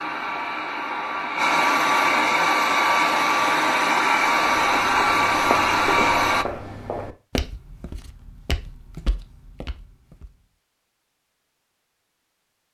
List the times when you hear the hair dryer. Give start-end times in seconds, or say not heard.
0.0-6.5.